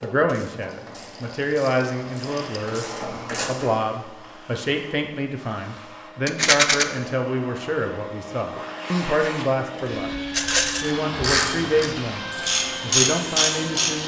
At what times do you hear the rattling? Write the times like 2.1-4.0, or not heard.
1.6-2.6, 6.2-6.8, 10.3-10.9.